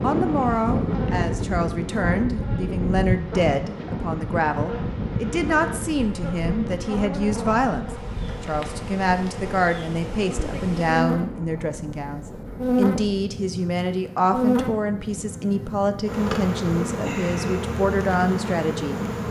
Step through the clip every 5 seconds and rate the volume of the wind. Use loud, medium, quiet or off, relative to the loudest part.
loud, medium, medium, medium.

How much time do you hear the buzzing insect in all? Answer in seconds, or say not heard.
19 s.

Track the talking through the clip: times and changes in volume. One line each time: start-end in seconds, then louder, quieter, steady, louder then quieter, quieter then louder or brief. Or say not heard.
0.0-19.0 steady.